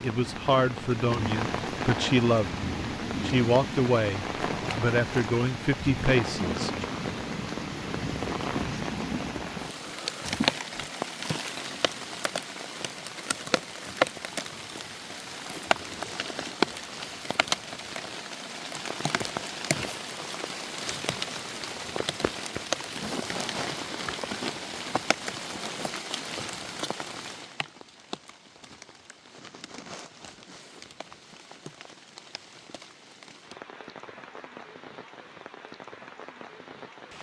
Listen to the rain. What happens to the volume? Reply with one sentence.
The volume of the rain goes down.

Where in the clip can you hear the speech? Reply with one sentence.
The speech can be heard from 0.0 to 6.8 s.